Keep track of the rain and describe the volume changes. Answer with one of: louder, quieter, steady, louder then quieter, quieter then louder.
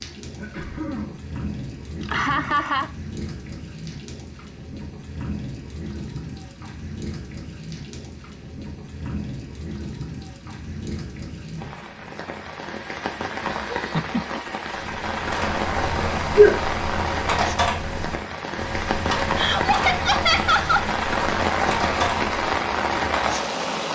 louder.